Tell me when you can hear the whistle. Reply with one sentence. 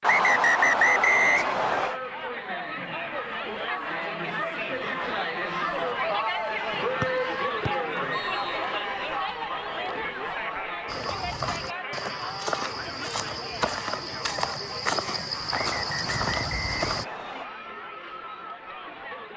You can hear the whistle from 0.0 to 2.0 s, from 7.0 to 8.8 s and from 15.5 to 17.4 s.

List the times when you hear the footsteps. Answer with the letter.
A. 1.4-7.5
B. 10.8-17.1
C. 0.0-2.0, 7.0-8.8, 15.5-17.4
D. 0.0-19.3
B.